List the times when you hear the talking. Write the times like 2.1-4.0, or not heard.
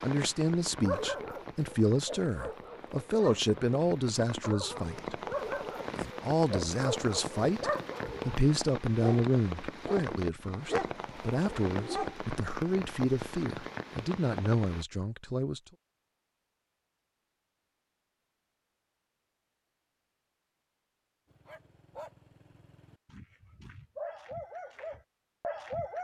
0.0-5.2, 6.0-15.6.